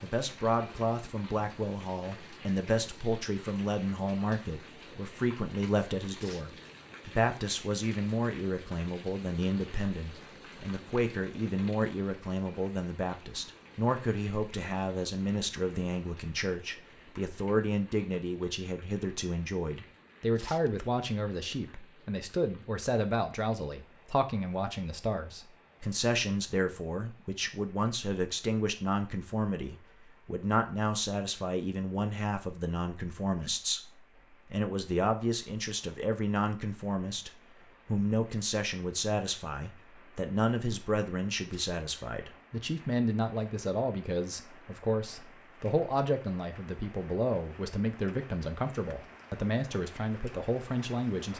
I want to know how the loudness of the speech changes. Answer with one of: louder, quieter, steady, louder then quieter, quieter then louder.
steady.